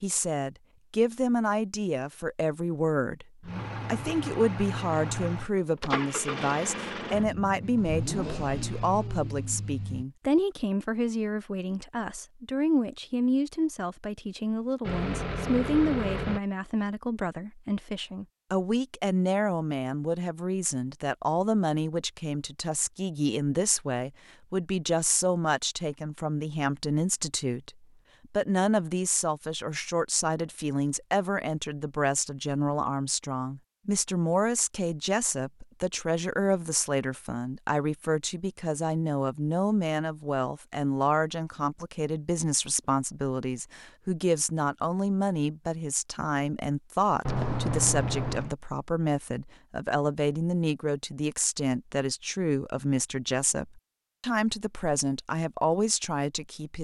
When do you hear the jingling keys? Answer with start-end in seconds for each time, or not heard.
47.2-48.5.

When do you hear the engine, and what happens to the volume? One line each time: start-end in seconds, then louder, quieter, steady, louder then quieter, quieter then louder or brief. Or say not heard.
3.4-10.1 steady
14.8-16.4 brief.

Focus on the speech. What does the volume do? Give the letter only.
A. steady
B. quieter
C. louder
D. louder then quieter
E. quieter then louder
A.